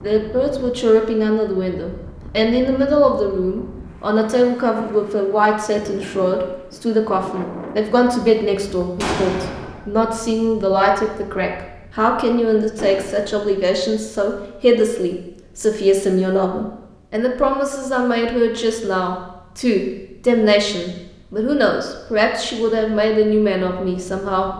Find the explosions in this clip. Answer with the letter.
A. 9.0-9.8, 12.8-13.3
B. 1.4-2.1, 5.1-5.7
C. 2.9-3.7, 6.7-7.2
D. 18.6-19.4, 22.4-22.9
A.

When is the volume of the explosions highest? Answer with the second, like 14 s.
9 s.